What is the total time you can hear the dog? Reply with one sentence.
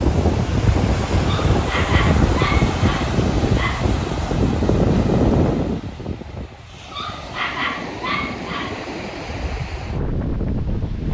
You can hear the dog for 5 seconds altogether.